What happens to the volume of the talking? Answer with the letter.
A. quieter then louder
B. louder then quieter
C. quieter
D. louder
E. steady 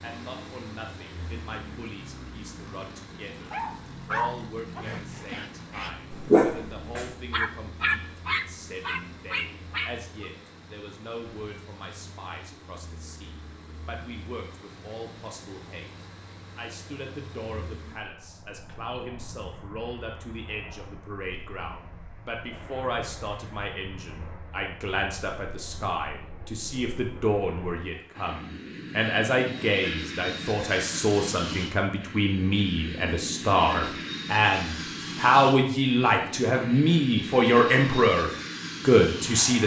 D.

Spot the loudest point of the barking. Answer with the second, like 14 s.
6 s.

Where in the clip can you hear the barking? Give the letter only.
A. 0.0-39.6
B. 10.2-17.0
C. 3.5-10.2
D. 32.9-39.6
C.